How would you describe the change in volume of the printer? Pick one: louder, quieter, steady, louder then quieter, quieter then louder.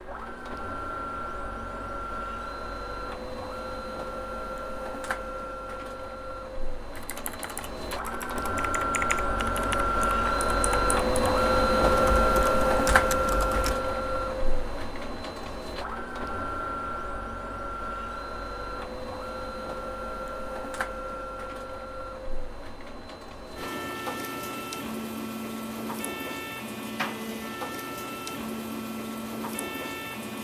louder then quieter.